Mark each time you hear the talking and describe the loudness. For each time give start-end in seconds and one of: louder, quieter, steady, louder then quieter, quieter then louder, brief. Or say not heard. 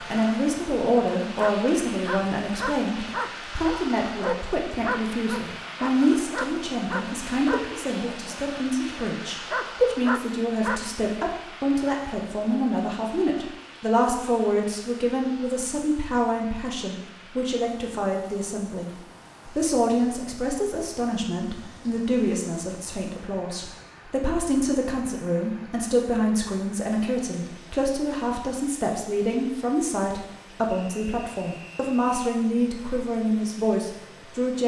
0.0-34.6 steady.